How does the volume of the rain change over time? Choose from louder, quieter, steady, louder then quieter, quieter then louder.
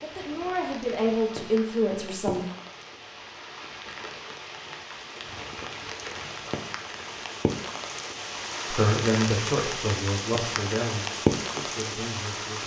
louder.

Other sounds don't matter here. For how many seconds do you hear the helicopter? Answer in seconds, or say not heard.
not heard.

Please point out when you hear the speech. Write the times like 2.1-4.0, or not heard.
0.0-2.5, 8.7-12.6.